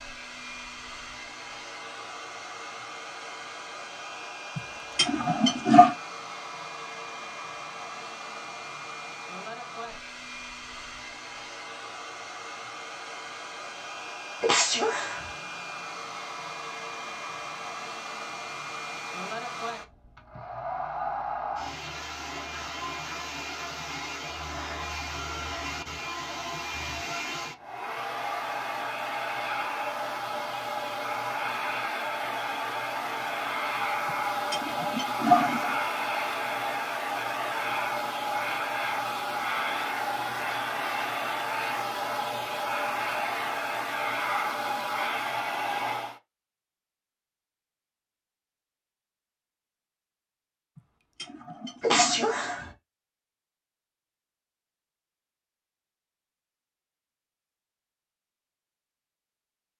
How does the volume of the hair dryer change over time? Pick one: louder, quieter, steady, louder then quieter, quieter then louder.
louder.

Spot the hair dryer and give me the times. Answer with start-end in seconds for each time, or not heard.
0.0-46.2.